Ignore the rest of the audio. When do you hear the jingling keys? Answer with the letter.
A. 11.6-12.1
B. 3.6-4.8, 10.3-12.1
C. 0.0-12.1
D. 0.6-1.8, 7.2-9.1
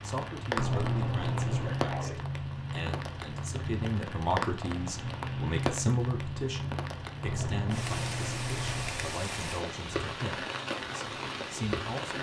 D.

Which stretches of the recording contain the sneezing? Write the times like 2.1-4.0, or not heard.
1.6-2.2.